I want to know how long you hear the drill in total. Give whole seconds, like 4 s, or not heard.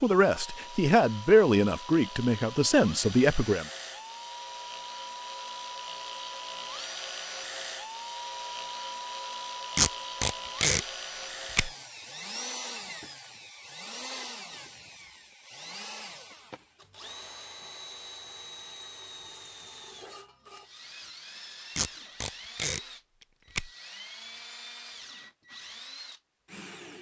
27 s.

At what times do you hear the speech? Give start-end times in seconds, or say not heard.
0.0-3.6.